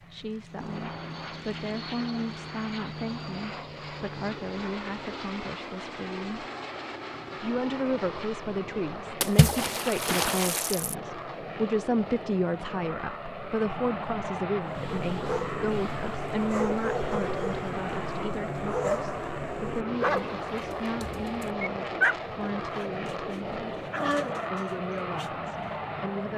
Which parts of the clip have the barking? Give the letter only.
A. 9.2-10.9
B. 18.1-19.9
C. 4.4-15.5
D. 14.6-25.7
D.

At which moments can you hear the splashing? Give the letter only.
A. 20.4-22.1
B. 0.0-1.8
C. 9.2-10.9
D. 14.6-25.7
C.